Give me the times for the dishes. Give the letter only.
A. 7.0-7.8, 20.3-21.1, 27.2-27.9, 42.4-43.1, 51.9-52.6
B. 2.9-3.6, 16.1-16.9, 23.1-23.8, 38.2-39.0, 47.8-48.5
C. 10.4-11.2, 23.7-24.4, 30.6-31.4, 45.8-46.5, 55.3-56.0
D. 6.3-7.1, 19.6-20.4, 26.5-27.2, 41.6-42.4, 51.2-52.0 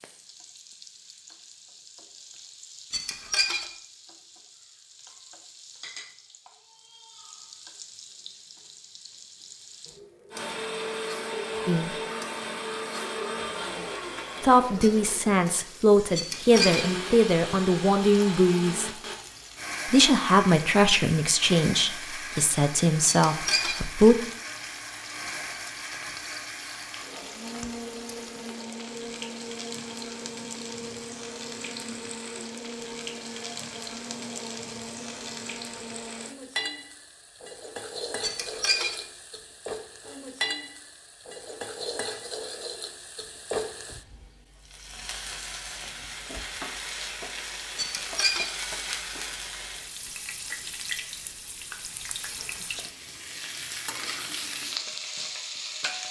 B.